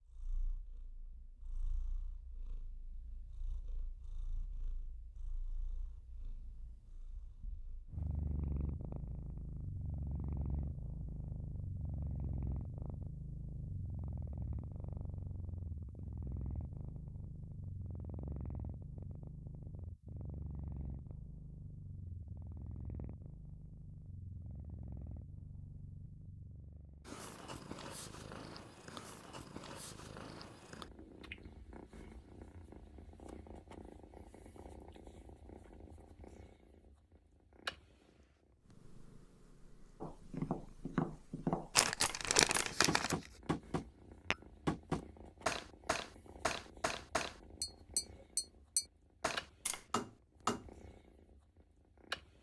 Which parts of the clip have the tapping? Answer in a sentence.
You can hear the tapping from 40.0 to 50.6 s.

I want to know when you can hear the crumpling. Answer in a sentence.
You can hear the crumpling from 41.8 to 43.1 s.